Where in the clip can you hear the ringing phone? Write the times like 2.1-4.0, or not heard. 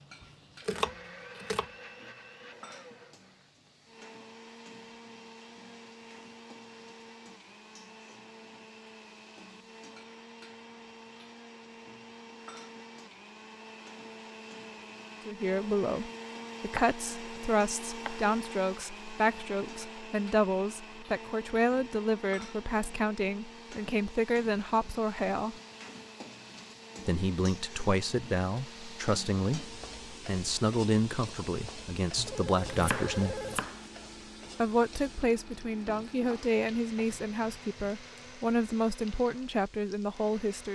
32.2-33.6.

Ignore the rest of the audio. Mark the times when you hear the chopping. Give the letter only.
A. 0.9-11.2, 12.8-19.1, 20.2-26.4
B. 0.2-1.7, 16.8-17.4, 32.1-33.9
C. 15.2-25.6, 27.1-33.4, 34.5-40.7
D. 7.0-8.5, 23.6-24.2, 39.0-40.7
B.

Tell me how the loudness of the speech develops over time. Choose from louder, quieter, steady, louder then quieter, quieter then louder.
steady.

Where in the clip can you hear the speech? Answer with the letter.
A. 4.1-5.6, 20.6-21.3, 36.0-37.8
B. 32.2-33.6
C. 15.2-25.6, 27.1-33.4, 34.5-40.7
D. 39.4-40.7
C.